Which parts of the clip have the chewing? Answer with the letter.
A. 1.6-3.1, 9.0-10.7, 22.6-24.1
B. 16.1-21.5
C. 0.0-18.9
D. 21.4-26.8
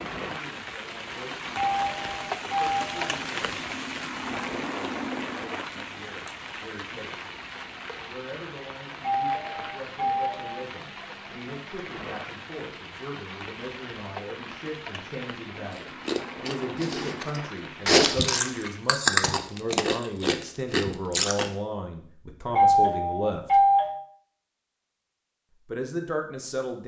B.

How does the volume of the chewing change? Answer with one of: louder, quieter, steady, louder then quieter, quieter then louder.
louder then quieter.